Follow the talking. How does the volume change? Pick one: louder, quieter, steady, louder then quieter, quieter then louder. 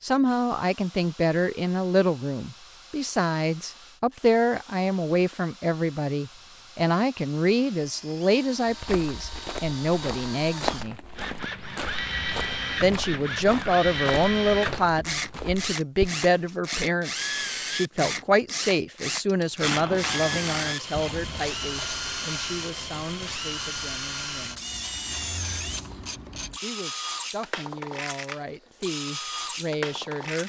quieter.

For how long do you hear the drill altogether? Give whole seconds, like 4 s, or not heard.
30 s.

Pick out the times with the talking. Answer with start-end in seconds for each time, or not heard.
0.0-10.9, 12.8-24.6, 26.6-30.4.